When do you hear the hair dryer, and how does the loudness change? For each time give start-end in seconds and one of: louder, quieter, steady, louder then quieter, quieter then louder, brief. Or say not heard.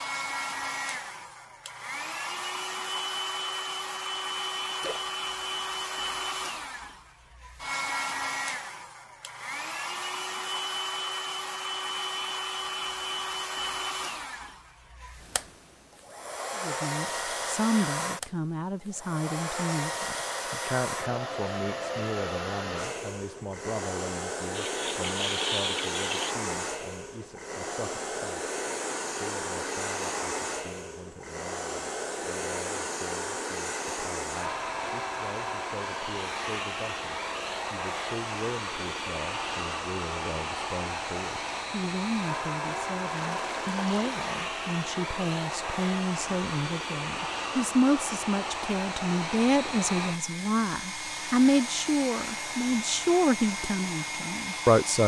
0.0-55.0 steady.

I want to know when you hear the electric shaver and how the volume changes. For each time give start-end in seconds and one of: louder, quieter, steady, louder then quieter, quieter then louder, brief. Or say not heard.
not heard.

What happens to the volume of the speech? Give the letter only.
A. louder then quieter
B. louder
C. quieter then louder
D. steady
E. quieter
C.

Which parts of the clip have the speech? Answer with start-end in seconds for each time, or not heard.
16.6-55.0.